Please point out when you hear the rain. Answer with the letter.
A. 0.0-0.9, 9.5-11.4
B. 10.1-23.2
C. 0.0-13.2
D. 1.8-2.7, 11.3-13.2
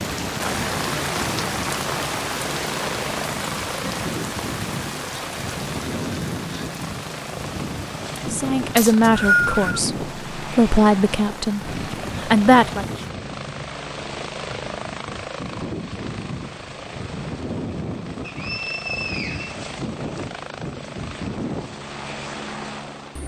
C.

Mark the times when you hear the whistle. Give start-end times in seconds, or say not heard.
8.8-9.7, 18.2-20.2.